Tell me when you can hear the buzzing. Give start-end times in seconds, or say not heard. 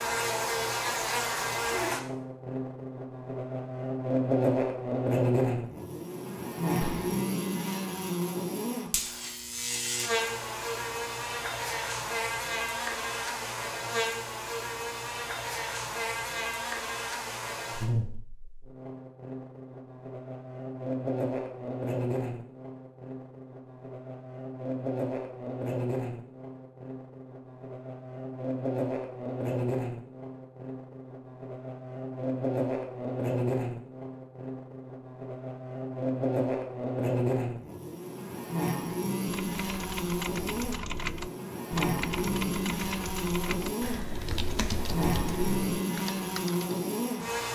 0.0-47.5.